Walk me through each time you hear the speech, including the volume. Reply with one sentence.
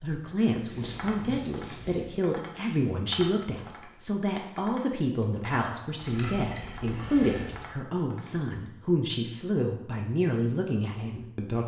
You can hear the speech from 0.0 to 11.6 s, at a steady volume.